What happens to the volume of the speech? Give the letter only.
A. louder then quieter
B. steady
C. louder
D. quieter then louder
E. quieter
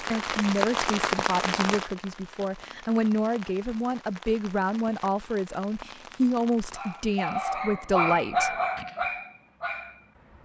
B.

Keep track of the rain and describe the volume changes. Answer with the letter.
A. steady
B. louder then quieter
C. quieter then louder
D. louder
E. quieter
E.